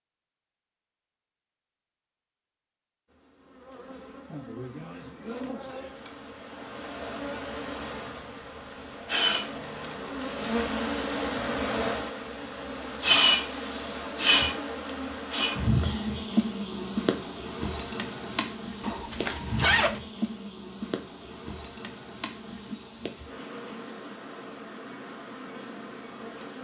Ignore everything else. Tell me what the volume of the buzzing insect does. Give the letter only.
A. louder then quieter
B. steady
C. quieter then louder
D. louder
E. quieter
A.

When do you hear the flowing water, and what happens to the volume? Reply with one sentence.
The flowing water can't be heard in this clip.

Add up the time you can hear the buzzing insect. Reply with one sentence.
The buzzing insect can be heard for 23 seconds in total.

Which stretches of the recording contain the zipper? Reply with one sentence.
You can hear the zipper from 18.8 to 20.0 s.